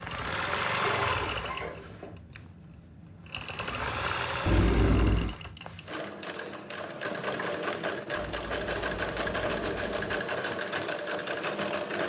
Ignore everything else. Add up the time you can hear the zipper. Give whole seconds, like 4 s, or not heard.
4 s.